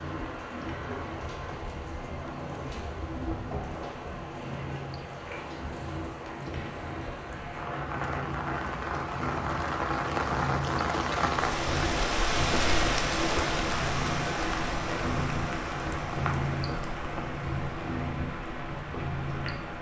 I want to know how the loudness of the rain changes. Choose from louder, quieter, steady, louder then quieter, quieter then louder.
louder then quieter.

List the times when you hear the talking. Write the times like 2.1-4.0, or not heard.
not heard.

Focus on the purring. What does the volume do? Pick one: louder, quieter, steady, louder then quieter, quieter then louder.
louder.